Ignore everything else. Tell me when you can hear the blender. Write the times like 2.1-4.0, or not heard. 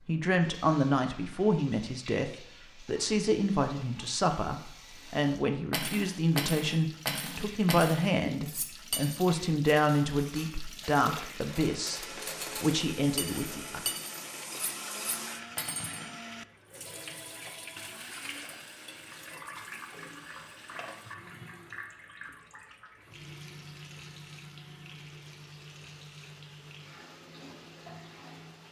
10.6-28.6.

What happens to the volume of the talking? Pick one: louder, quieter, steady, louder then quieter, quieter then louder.
steady.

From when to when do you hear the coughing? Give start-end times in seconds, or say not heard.
not heard.